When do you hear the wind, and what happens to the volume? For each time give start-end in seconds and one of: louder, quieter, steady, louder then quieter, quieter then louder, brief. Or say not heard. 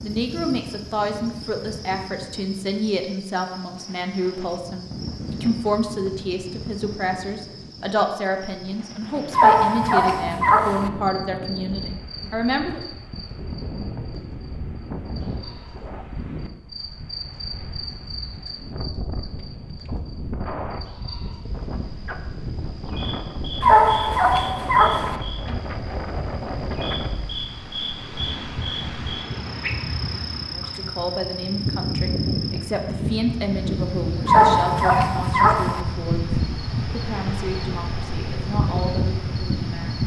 0.0-40.0 louder.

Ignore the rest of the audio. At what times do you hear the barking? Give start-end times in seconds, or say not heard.
9.3-10.9, 23.6-25.2, 34.2-35.9.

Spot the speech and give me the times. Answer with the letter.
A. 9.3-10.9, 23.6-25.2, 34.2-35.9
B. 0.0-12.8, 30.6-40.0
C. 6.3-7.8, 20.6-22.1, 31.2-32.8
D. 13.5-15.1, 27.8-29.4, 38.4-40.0
B.